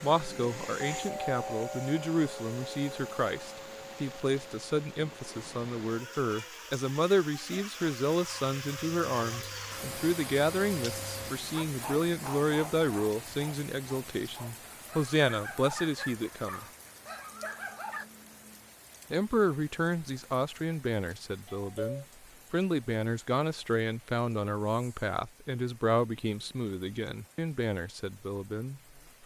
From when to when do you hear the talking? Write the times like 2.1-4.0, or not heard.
0.0-16.6, 19.1-29.2.